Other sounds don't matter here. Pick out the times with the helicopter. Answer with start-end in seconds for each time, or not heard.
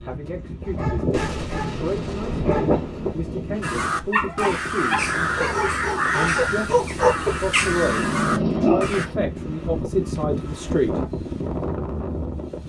not heard.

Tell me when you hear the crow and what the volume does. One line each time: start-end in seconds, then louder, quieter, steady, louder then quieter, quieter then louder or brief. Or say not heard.
3.6-9.1 steady.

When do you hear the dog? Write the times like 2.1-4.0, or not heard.
0.6-9.2.